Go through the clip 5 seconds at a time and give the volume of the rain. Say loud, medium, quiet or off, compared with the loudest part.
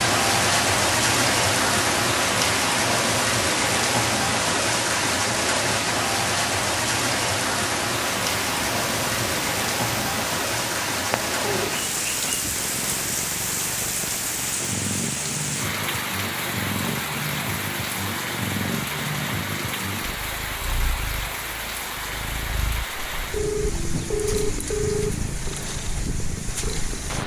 loud, loud, medium, medium, medium, quiet.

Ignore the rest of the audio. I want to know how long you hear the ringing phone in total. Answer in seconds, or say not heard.
2 s.